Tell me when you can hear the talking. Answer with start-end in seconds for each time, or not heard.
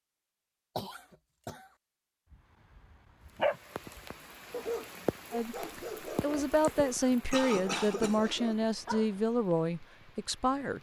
5.3-10.7.